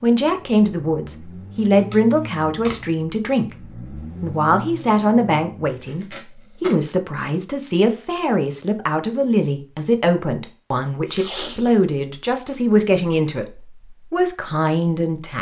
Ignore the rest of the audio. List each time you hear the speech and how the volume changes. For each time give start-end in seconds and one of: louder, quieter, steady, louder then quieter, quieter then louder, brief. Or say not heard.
0.0-15.3 steady.